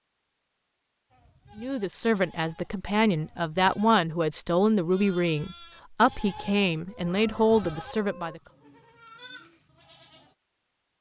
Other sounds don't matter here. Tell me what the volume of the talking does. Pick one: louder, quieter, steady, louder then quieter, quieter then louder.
steady.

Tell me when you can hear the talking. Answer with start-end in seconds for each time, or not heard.
1.6-8.4.